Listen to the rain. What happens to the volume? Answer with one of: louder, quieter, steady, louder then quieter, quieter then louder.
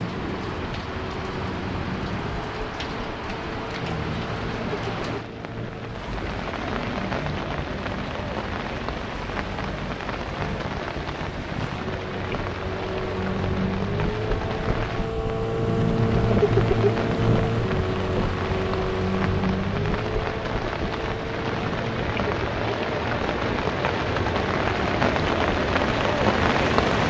louder.